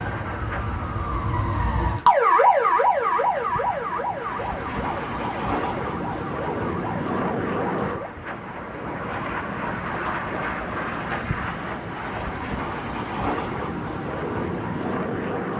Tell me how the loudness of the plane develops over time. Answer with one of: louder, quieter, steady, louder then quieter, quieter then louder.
louder.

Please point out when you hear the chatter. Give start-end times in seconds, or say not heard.
not heard.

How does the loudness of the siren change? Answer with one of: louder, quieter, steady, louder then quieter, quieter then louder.
louder then quieter.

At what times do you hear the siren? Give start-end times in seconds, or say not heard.
0.0-7.9.